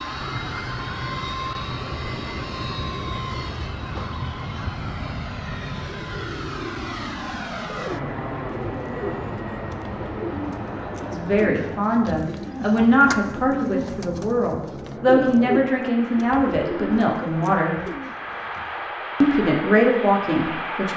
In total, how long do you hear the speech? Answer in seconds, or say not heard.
8 s.